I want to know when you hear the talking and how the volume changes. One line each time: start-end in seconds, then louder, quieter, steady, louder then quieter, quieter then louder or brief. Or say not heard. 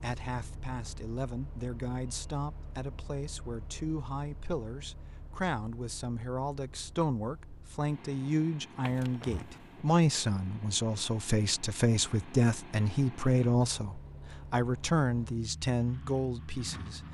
0.0-17.0 louder.